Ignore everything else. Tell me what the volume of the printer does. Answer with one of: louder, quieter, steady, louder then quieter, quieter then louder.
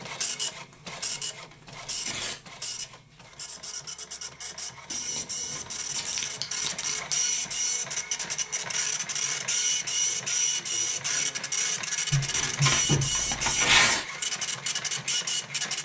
louder.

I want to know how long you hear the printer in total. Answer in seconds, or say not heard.
16 s.